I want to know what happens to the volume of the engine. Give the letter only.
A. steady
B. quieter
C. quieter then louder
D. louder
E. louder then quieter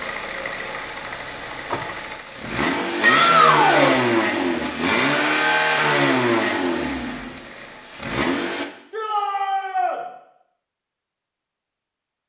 E.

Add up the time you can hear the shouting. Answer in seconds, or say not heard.
2 s.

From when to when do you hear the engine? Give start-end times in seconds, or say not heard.
0.0-8.7.